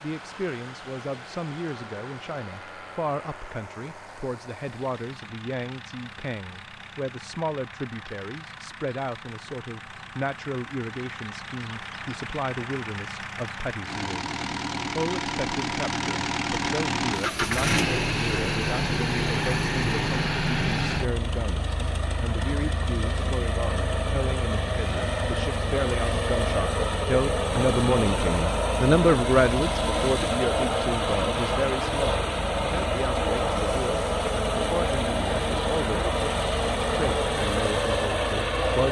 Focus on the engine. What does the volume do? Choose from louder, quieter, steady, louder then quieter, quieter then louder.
louder.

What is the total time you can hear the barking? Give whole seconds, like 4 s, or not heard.
not heard.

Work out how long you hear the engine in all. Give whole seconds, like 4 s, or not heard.
39 s.